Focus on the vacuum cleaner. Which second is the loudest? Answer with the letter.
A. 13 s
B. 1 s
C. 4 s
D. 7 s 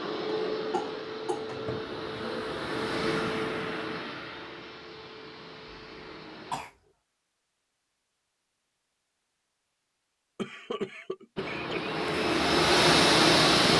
A.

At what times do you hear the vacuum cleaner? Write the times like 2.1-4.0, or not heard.
0.0-6.6, 11.3-13.7.